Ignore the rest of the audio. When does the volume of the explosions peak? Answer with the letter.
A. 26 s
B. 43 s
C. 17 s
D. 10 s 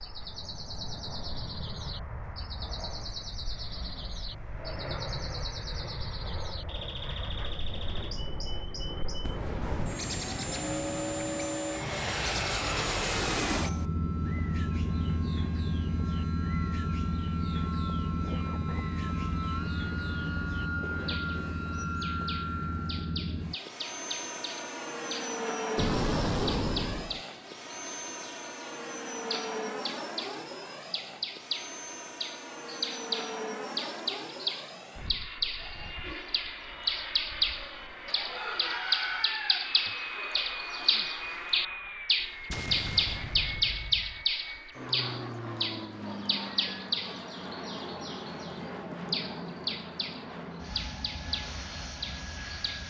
A.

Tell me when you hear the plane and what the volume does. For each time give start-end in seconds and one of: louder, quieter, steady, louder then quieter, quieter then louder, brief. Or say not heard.
0.0-52.8 louder then quieter.